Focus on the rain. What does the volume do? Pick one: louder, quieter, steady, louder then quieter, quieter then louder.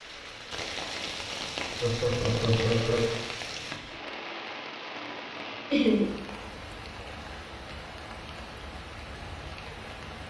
quieter.